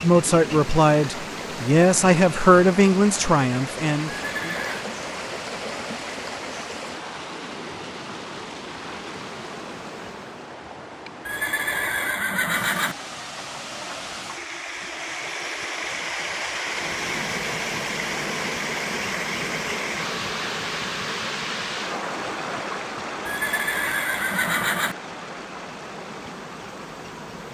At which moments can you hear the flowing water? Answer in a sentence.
You can hear the flowing water from 0.0 to 27.4 s.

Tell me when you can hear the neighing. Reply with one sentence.
The neighing can be heard from 4.0 to 4.8 s, from 11.2 to 12.9 s and from 23.2 to 24.9 s.